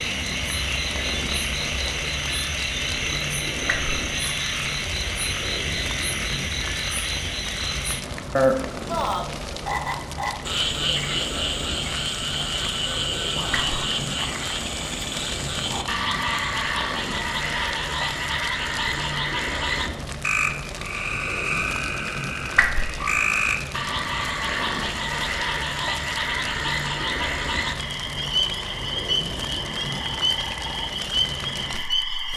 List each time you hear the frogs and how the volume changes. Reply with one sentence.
You can hear the frogs from 0.0 to 32.3 s, at a steady volume.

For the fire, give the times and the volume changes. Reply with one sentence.
The fire can be heard from 0.0 to 32.3 s, at a steady volume.